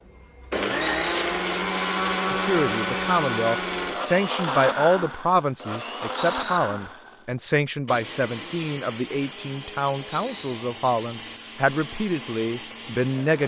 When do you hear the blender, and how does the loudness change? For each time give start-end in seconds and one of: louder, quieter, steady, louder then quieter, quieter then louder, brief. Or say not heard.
0.1-13.4 quieter.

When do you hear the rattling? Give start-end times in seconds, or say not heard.
0.8-1.2, 6.2-6.6, 10.1-10.6.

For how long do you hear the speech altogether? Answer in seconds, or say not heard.
11 s.